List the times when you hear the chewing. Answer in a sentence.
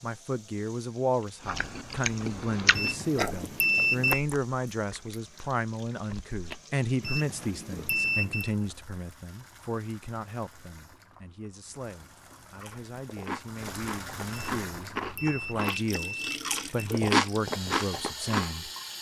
The chewing can be heard from 1.4 to 8.1 s and from 12.4 to 18.6 s.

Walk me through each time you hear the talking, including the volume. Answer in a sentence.
The talking can be heard from 0.0 to 18.7 s, getting quieter then louder.